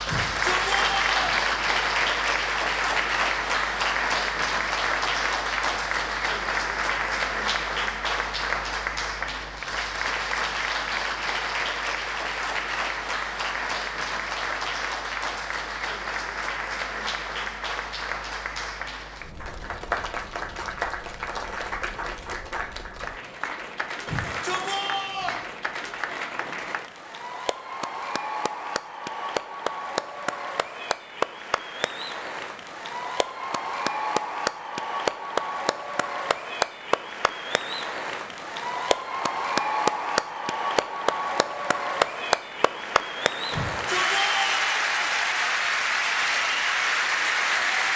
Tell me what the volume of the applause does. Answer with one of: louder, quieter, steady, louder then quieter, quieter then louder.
quieter then louder.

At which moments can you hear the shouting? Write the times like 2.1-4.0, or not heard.
0.1-1.4, 24.1-25.4, 43.5-44.6.